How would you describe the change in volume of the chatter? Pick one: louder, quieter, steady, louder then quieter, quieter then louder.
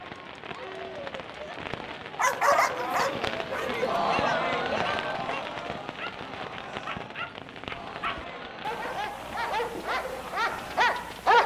louder then quieter.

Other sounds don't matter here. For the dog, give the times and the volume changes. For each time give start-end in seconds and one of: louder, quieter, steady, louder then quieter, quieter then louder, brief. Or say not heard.
2.1-11.4 quieter then louder.